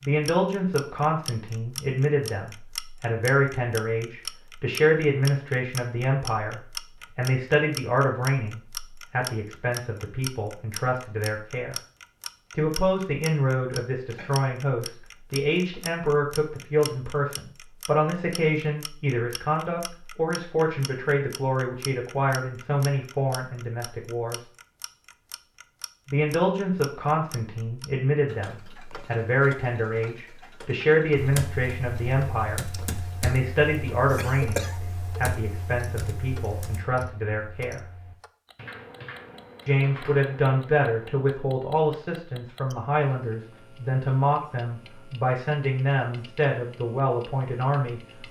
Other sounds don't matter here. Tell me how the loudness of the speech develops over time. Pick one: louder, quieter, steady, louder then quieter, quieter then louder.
steady.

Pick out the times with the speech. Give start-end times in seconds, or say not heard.
0.0-11.8, 12.6-24.4, 26.1-37.8, 39.6-48.0.